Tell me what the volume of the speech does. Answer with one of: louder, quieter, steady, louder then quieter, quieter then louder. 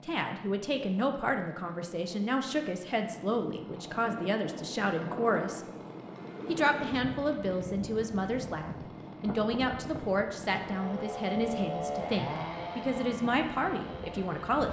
steady.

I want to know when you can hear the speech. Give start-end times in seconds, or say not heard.
0.1-5.6, 6.5-14.6.